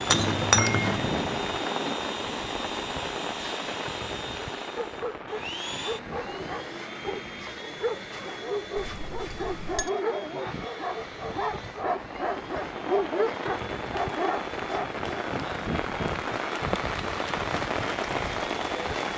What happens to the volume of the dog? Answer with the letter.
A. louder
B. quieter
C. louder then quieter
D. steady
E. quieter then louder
A.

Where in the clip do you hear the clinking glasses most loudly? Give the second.
1 s.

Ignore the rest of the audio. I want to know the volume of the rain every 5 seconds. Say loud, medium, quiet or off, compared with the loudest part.
loud, quiet, medium, loud.